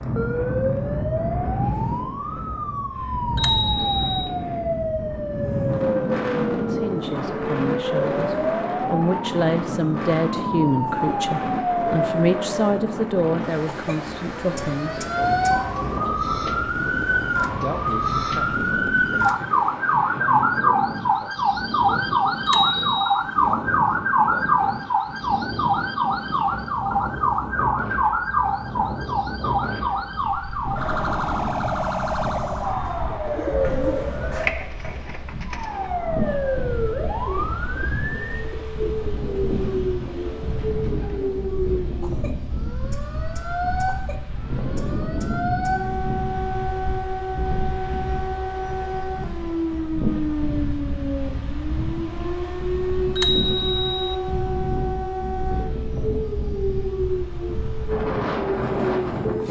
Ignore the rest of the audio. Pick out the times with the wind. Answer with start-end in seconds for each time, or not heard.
0.0-59.4.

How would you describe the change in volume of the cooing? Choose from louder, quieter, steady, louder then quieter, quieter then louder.
quieter.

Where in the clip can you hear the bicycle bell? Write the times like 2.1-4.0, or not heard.
3.4-4.3, 22.4-23.2, 53.1-54.0.